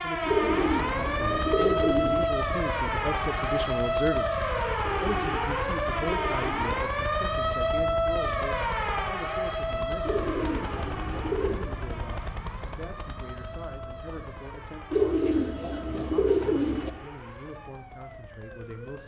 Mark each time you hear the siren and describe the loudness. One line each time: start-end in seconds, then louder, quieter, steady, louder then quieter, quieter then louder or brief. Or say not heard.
0.0-19.0 quieter.